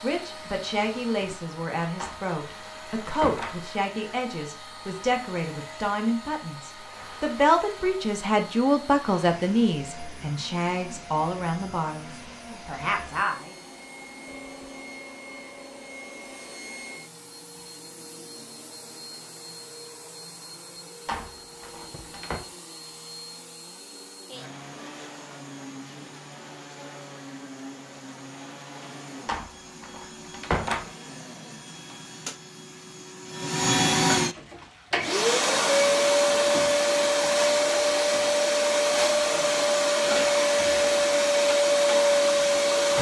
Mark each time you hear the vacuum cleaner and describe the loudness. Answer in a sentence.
The vacuum cleaner can be heard from 0.0 to 42.9 s, getting louder.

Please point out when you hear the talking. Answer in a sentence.
The talking can be heard from 0.0 to 13.5 s.